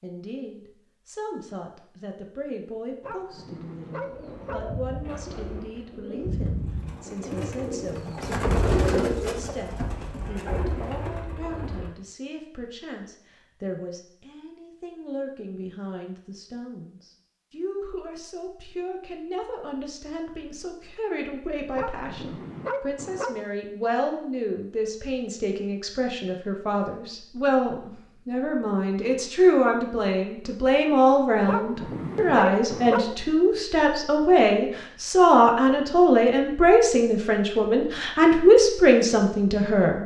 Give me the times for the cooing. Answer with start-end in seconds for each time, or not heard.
4.0-11.9.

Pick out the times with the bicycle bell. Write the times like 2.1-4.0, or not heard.
not heard.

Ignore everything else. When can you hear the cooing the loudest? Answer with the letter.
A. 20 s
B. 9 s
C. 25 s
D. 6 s
B.